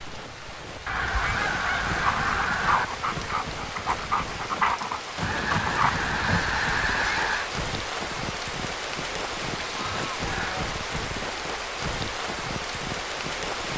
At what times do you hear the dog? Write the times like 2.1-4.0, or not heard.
2.0-6.5.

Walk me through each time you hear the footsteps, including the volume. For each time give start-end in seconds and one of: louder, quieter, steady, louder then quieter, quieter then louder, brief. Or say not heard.
not heard.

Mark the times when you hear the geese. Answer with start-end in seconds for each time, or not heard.
0.8-2.9, 5.2-7.5, 9.7-10.8.